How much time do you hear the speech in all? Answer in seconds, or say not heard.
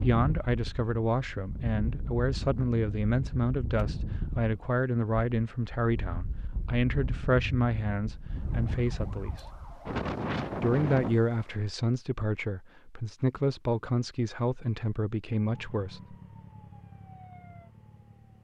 15 s.